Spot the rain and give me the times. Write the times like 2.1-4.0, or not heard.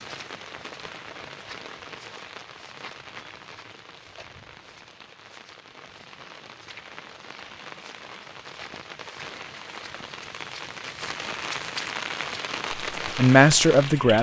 0.0-14.1.